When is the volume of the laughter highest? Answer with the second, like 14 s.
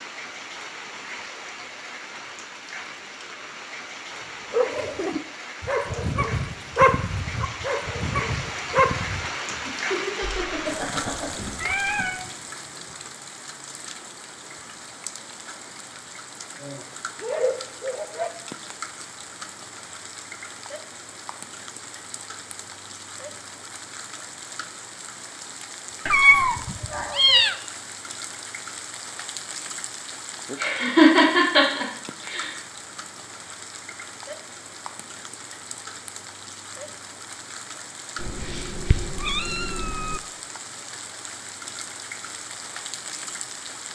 31 s.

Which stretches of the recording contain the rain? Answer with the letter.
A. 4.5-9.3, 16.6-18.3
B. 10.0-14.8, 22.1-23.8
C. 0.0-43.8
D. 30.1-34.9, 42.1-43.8
C.